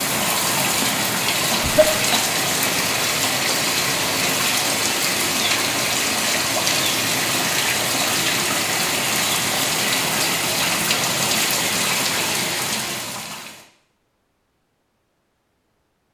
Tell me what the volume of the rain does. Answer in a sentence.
The volume of the rain stays about the same.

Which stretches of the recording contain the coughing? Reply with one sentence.
You can hear the coughing from 1.5 to 2.8 s.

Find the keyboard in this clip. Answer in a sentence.
The keyboard can't be heard in this clip.